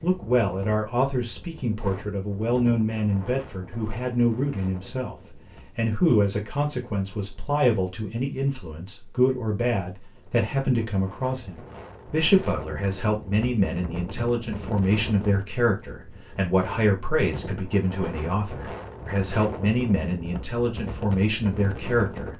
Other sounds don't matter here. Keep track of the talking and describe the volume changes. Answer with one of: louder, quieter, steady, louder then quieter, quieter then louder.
steady.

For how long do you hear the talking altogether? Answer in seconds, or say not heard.
22 s.